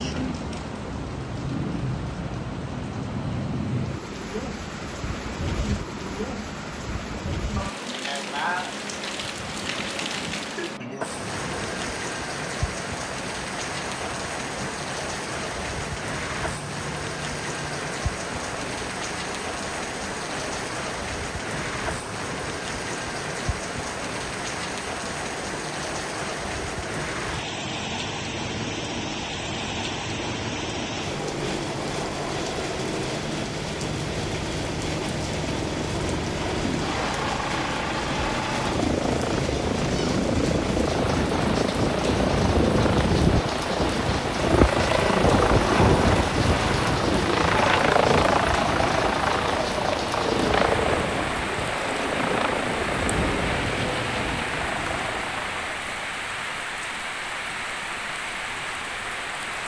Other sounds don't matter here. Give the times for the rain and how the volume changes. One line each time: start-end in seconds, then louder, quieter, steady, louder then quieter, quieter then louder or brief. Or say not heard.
0.0-59.6 steady.